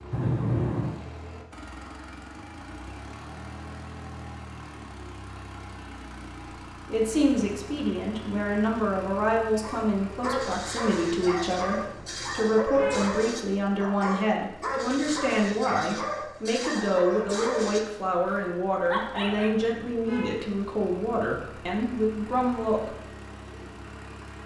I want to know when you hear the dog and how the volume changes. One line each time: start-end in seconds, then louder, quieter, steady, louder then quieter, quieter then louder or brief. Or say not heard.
9.6-19.6 steady.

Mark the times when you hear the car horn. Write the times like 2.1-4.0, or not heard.
0.1-1.0, 11.8-13.2, 19.1-20.4.